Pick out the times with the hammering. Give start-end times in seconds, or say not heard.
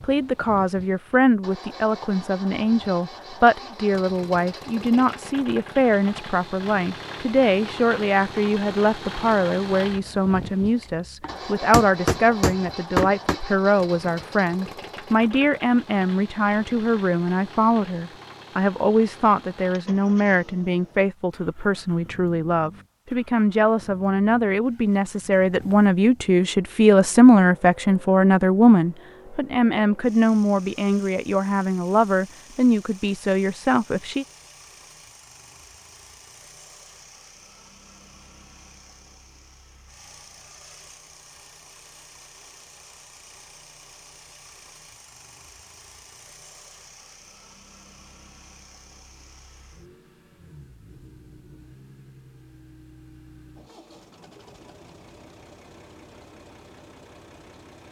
10.8-13.4.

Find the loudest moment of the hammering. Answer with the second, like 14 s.
13 s.